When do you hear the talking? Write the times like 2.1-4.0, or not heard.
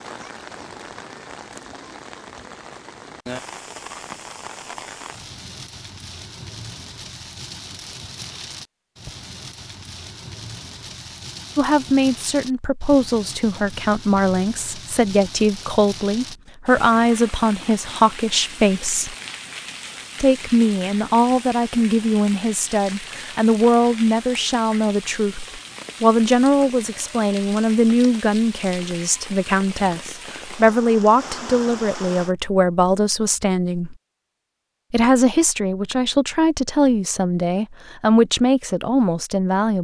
11.6-19.1, 20.2-34.0, 34.9-39.7.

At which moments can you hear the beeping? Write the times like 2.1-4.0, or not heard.
not heard.